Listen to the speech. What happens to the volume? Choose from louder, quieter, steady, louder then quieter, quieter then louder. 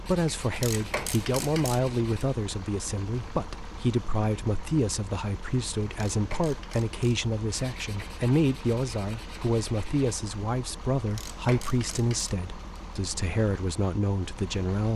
steady.